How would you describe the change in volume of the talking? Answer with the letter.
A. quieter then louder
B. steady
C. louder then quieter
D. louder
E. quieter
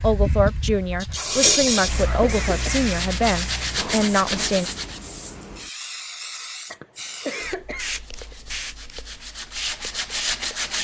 B.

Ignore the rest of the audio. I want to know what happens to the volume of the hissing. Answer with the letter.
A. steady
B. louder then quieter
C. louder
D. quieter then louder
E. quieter
E.